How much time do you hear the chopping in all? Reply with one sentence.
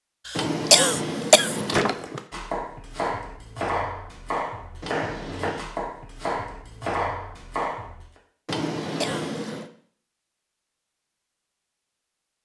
You can hear the chopping for 6 seconds altogether.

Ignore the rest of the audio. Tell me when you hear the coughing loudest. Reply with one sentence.
The volume of the coughing peaks at 1 second.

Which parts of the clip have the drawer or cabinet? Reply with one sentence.
The drawer or cabinet can be heard from 0.3 to 2.2 s, from 4.8 to 5.6 s and from 8.4 to 9.7 s.